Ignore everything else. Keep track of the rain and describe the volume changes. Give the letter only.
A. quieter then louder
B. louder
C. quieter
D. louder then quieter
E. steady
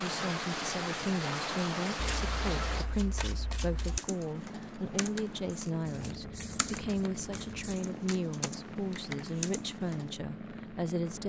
C.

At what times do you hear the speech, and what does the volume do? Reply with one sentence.
The speech can be heard from 0.0 to 11.2 s, at a steady volume.